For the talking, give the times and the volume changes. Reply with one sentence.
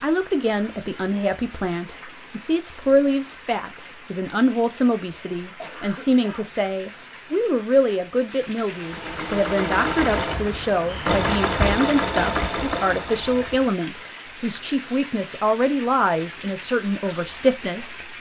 The talking can be heard from 0.0 to 18.1 s, at a steady volume.